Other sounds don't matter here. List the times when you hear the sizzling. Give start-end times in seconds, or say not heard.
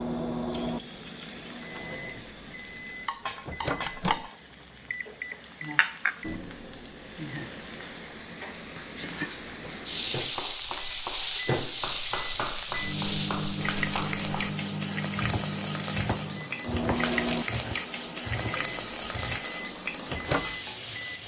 0.0-21.2.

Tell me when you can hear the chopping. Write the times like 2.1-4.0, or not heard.
10.2-14.6, 15.2-19.4.